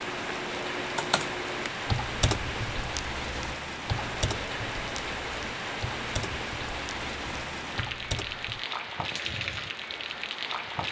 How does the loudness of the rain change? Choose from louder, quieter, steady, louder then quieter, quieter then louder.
steady.